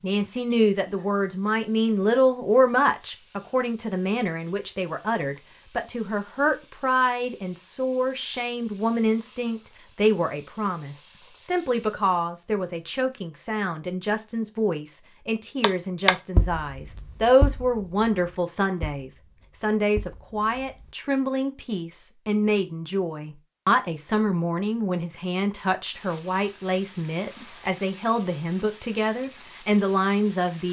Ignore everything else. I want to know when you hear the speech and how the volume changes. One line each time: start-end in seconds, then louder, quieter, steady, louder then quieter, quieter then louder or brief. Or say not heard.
0.0-30.6 steady.